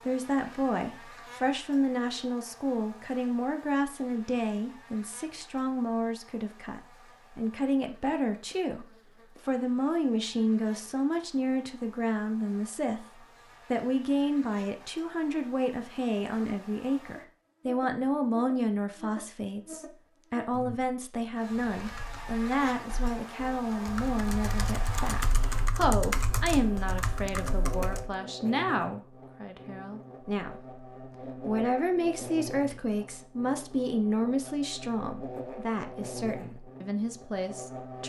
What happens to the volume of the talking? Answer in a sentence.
The loudness of the talking stays about the same.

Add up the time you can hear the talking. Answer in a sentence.
The talking can be heard for 38 seconds in total.